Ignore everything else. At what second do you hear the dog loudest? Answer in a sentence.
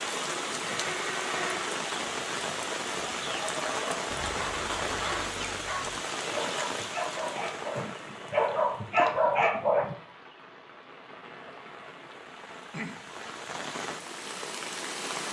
The volume of the dog peaks at 9 seconds.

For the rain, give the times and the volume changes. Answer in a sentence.
You can hear the rain from 0.0 to 15.2 s, getting quieter then louder.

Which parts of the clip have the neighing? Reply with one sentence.
The neighing can be heard from 0.6 to 1.8 s.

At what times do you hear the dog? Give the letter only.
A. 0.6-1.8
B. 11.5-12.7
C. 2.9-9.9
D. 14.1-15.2
C.